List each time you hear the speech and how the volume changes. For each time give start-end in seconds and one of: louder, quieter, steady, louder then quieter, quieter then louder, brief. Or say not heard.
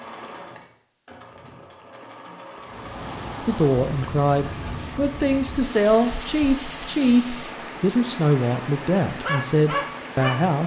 3.5-10.6 steady.